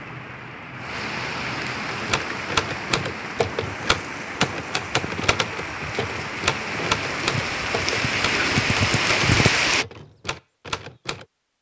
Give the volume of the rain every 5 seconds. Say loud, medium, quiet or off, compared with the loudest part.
medium, loud, off.